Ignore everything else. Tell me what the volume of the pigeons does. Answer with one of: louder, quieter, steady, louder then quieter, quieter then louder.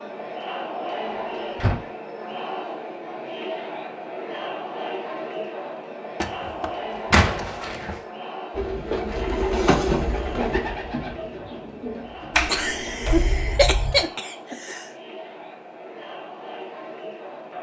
quieter.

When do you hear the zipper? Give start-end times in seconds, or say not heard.
not heard.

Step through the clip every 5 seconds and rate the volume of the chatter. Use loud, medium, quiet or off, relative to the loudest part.
loud, loud, medium, medium.